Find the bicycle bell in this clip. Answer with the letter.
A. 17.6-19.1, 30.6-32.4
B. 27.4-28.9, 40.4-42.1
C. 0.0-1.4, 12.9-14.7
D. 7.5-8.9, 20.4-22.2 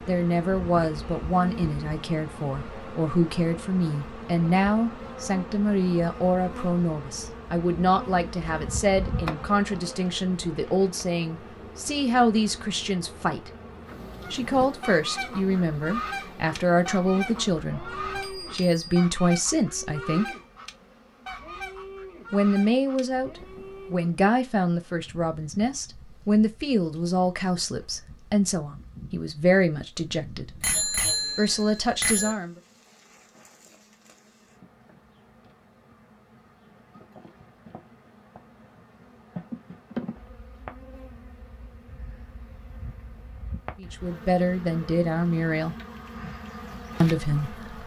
A.